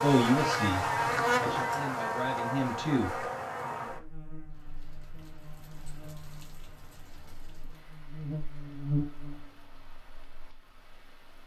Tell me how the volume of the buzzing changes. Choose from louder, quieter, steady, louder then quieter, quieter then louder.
quieter then louder.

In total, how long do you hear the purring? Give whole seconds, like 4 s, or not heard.
not heard.